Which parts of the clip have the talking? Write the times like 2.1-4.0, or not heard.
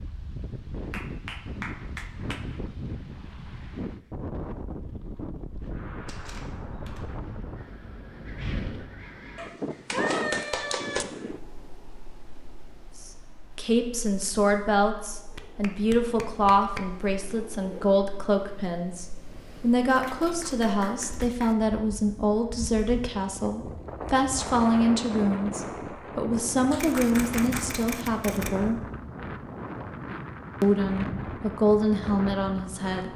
13.1-28.8, 30.6-33.1.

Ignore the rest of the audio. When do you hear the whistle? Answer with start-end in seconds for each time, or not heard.
not heard.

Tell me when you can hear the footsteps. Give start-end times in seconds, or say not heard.
not heard.